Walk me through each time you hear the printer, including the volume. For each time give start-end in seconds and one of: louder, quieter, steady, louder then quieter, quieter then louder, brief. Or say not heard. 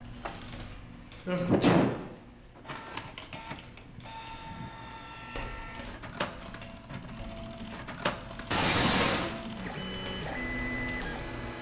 0.0-11.5 louder.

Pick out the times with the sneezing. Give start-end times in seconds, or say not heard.
1.2-1.9, 8.5-9.3.